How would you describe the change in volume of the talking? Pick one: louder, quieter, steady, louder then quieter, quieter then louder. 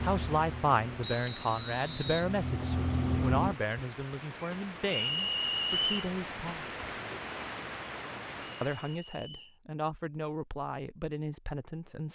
quieter.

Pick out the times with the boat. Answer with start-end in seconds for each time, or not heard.
0.0-3.5.